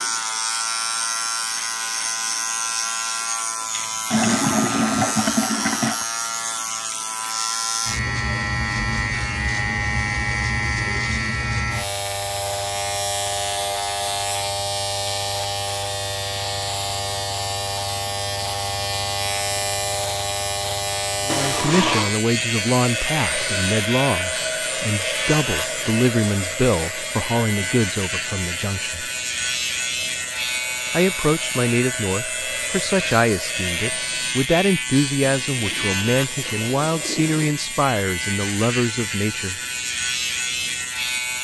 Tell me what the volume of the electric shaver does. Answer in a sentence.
The volume of the electric shaver stays about the same.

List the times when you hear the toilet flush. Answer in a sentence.
You can hear the toilet flush from 4.1 to 6.0 s, from 21.2 to 22.1 s and from 35.2 to 37.6 s.